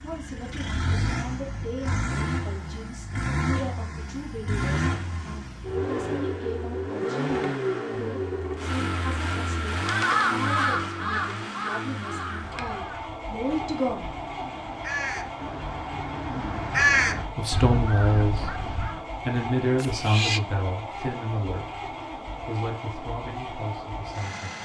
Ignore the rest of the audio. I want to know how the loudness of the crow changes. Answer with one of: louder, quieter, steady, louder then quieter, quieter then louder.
quieter then louder.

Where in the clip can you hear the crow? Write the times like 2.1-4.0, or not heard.
9.7-19.0.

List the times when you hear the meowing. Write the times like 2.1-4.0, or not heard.
19.8-20.4.